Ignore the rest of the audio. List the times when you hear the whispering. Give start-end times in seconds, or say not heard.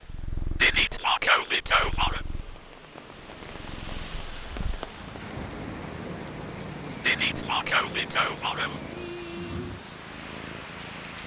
0.6-2.2, 7.0-8.8.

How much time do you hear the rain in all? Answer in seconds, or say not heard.
11 s.